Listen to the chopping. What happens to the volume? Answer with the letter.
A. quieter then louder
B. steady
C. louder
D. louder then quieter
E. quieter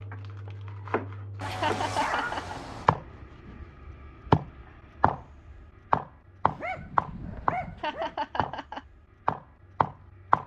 D.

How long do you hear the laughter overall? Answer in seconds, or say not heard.
2 s.